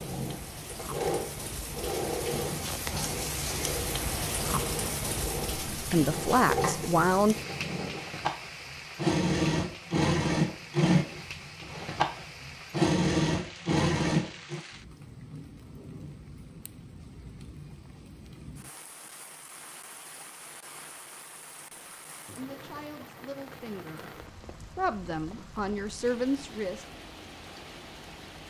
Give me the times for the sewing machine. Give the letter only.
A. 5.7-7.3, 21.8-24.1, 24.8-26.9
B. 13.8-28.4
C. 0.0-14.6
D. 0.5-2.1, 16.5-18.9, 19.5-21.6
C.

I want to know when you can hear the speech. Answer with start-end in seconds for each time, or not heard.
5.7-7.3, 21.8-24.1, 24.8-26.9.